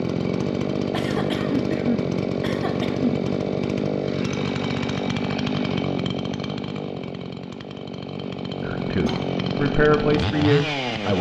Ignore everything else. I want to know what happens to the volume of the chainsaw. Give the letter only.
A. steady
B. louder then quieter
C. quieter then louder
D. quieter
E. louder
C.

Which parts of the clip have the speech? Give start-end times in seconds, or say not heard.
8.6-11.1.